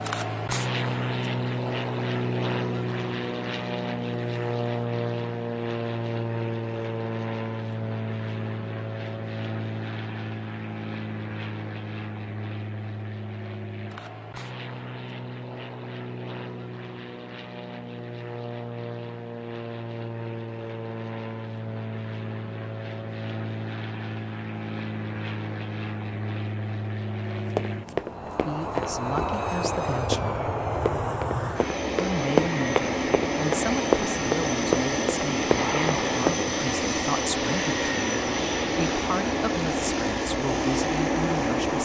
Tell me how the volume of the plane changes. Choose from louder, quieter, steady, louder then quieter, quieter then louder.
quieter then louder.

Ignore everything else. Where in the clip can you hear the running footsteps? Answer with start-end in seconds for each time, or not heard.
27.6-36.5.